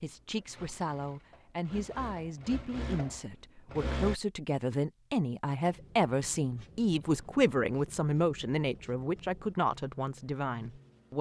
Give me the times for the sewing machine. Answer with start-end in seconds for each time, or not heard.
0.1-4.2.